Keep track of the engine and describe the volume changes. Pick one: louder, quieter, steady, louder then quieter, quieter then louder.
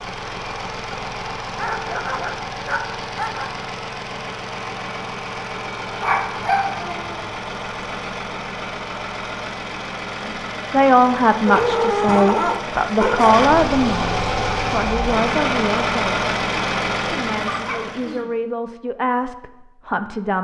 louder.